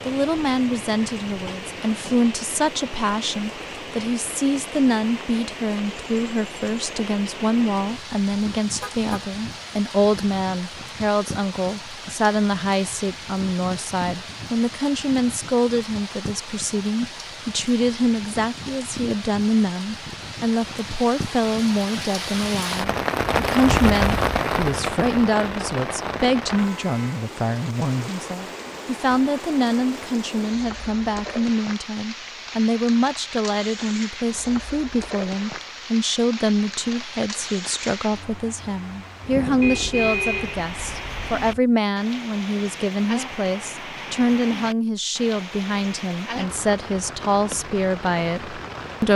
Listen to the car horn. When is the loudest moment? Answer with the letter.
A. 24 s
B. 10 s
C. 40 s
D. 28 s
C.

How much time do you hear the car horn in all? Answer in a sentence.
The car horn can be heard for 3 seconds in total.